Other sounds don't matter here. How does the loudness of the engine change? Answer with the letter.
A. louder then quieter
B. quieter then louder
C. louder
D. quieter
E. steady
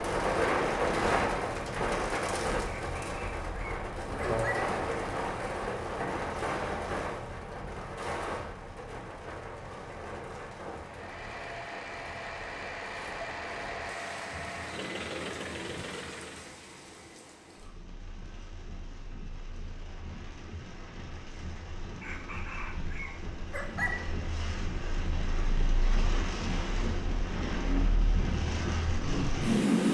E.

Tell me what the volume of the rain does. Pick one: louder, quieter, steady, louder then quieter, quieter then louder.
quieter then louder.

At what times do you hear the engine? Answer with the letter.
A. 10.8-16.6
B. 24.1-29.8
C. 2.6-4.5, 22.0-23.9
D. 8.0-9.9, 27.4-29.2
A.